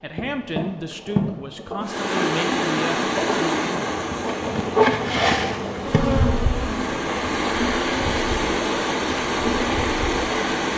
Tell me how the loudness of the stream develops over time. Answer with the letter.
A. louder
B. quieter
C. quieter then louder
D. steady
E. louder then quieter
C.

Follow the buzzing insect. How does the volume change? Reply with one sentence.
The loudness of the buzzing insect goes up, then down.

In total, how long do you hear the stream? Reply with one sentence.
You can hear the stream for 9 seconds altogether.